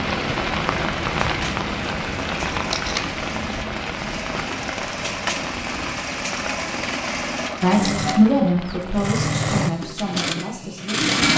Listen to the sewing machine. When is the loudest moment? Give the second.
11 s.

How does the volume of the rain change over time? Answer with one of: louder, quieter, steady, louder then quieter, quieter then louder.
quieter.